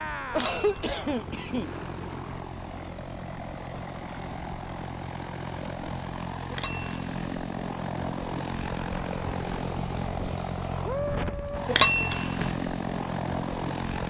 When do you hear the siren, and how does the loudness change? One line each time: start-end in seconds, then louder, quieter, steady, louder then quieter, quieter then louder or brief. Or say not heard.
not heard.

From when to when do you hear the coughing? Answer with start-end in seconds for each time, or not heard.
0.3-1.8.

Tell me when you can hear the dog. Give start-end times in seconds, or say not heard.
not heard.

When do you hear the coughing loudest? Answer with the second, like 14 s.
1 s.